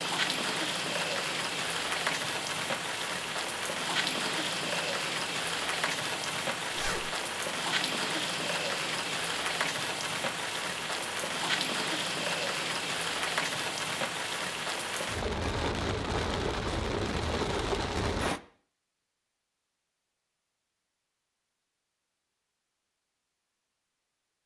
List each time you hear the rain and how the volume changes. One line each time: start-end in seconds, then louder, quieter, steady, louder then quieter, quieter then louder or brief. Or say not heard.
0.0-18.4 steady.